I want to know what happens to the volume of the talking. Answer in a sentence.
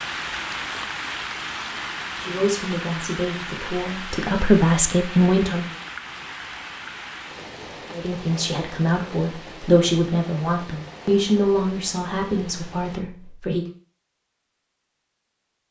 The loudness of the talking goes up, then down.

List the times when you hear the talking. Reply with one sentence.
You can hear the talking from 2.2 to 5.8 s and from 7.9 to 13.7 s.